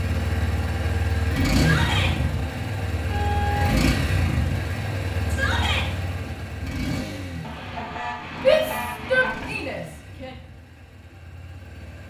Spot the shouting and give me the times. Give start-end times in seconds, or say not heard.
1.6-2.1, 5.3-5.9, 8.4-10.3.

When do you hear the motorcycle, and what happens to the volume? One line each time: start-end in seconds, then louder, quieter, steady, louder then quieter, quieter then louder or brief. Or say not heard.
0.0-12.0 quieter.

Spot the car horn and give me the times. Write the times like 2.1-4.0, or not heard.
3.1-3.7, 7.4-9.4.